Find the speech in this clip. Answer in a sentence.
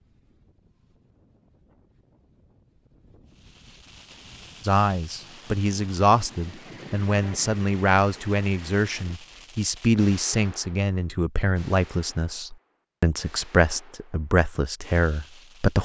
The speech can be heard from 4.7 to 15.8 s.